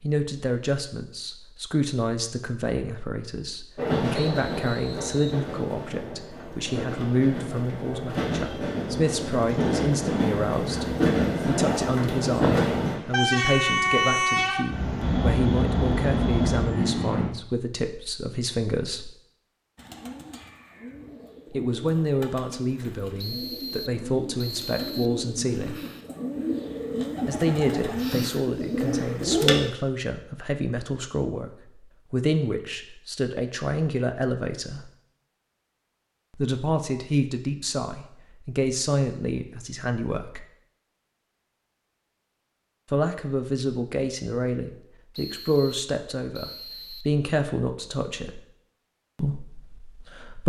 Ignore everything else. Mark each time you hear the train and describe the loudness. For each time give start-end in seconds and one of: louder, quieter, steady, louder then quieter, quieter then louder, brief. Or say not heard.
3.8-17.3 louder.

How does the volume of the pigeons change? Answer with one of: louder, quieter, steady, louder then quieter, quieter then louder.
louder.